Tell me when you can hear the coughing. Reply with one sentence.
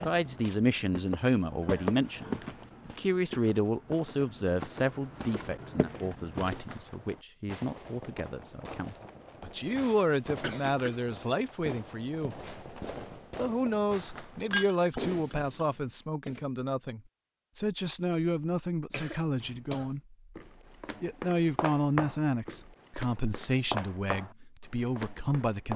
You can hear the coughing from 1.6 to 2.5 s, from 10.4 to 11.0 s and from 18.9 to 19.9 s.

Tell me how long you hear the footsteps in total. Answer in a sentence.
The footsteps can be heard for 12 seconds in total.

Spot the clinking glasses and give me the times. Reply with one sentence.
The clinking glasses can be heard from 14.5 to 15.3 s.